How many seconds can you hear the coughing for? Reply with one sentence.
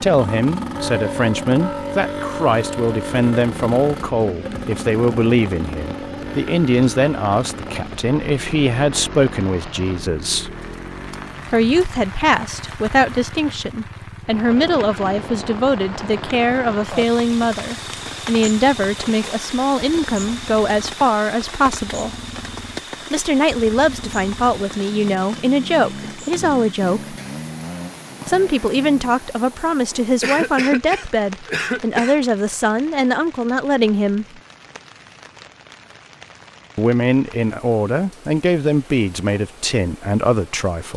The coughing can be heard for 2 seconds in total.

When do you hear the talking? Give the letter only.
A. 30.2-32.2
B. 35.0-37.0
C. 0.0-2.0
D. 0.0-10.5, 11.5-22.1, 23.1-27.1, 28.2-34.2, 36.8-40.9
D.